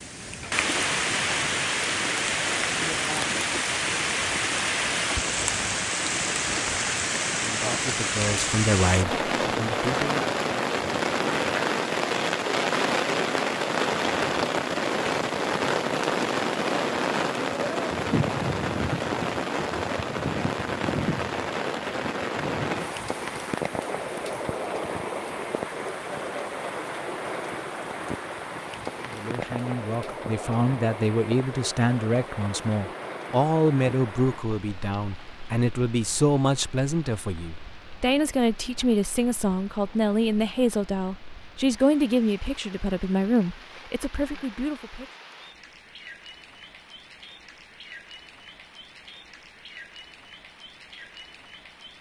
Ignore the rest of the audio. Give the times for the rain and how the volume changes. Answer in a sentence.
The rain can be heard from 0.0 to 51.9 s, getting quieter.